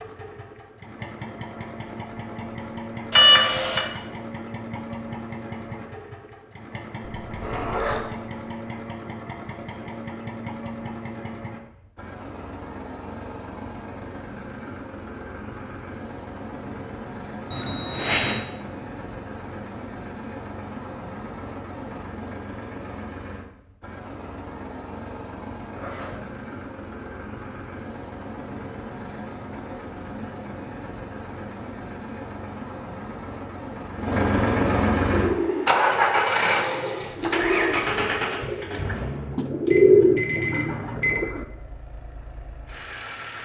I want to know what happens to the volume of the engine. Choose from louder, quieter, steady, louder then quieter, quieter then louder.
louder.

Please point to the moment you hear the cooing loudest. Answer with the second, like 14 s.
40 s.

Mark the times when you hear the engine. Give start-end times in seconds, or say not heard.
0.0-43.4.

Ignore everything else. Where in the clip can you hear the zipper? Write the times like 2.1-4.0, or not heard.
7.0-8.0, 25.7-26.2, 36.5-38.0.